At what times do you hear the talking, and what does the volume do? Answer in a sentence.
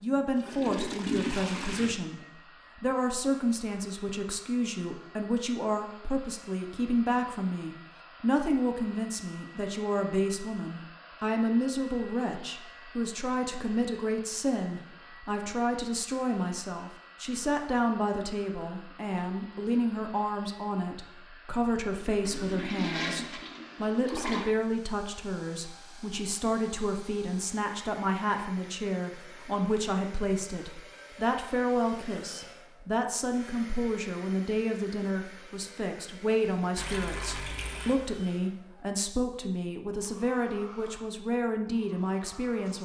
You can hear the talking from 0.0 to 42.8 s, at a steady volume.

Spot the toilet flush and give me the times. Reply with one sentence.
You can hear the toilet flush from 0.1 to 1.9 s, from 22.1 to 24.5 s and from 36.8 to 38.0 s.